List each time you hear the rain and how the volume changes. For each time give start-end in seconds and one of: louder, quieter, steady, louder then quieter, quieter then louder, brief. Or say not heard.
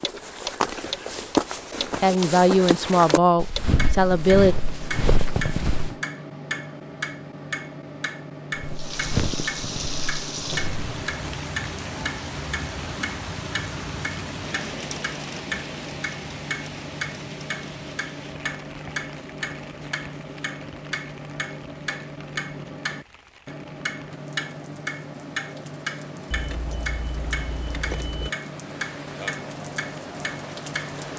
8.8-31.1 quieter then louder.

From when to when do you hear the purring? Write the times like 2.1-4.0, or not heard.
not heard.